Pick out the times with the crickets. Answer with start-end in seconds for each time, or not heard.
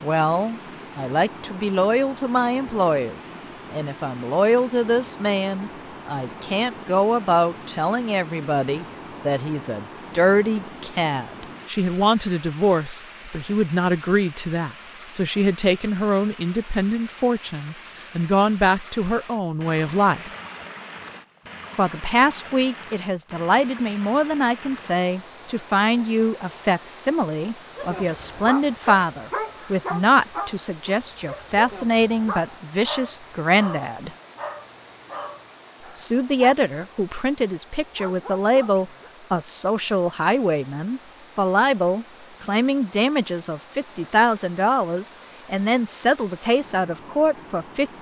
not heard.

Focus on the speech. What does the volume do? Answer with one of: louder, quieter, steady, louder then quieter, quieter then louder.
steady.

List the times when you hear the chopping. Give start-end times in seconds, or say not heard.
not heard.